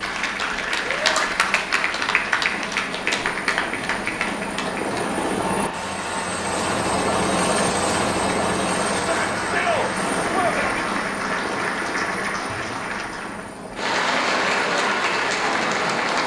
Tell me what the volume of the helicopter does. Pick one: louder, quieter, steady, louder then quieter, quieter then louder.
louder then quieter.